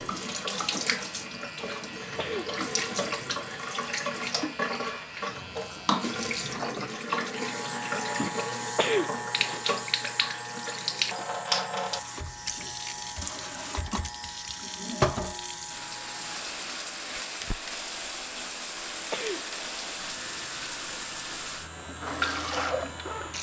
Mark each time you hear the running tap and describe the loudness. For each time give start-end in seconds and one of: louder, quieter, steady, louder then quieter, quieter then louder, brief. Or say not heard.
0.0-23.3 steady.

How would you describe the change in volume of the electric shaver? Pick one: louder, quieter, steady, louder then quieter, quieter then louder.
louder then quieter.